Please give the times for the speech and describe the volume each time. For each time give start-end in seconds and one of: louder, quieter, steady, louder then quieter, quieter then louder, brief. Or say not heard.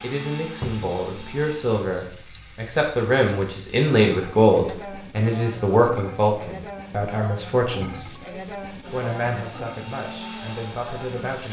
0.0-11.4 louder then quieter.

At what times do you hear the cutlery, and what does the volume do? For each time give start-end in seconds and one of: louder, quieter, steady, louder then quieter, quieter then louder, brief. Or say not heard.
not heard.